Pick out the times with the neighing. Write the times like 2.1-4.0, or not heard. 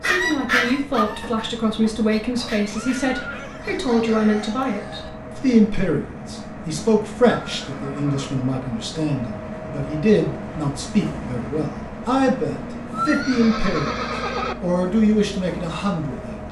1.8-3.8, 7.4-8.3, 12.9-14.6.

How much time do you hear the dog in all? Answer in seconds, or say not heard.
3 s.